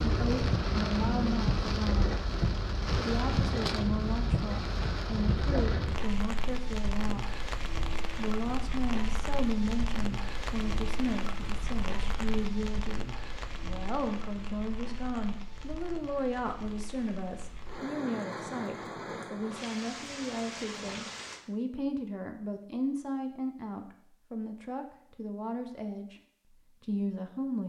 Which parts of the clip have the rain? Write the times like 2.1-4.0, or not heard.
0.0-21.4.